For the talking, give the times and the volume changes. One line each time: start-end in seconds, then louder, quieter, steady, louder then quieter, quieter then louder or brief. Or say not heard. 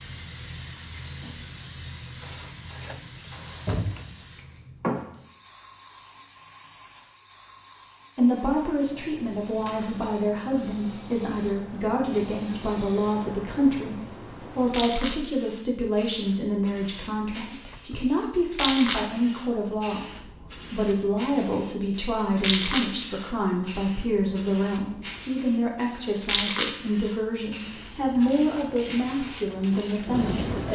8.2-30.7 steady.